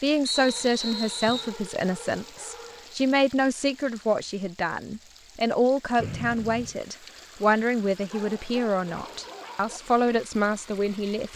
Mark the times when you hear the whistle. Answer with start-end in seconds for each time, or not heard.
0.2-1.6, 6.0-6.8.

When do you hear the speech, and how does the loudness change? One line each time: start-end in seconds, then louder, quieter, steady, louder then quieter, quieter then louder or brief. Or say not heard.
0.0-11.3 steady.